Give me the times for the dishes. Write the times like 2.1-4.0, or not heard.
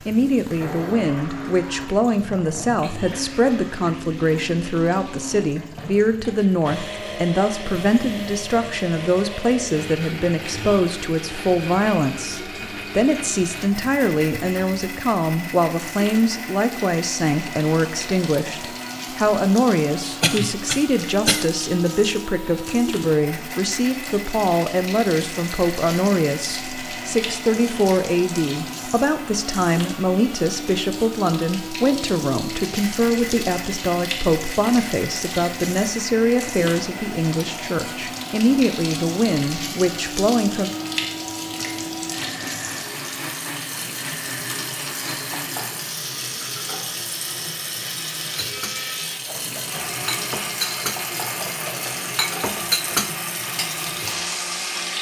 48.4-54.9.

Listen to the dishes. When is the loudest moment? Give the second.
53 s.